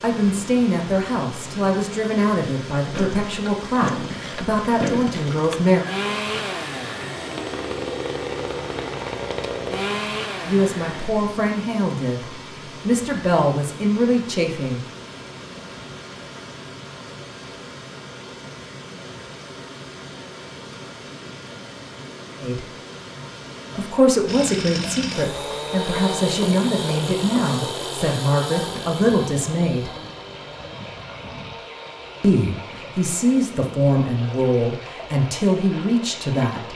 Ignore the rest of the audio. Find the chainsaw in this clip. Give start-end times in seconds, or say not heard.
2.9-11.1, 24.2-36.7.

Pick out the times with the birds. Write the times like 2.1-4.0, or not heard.
not heard.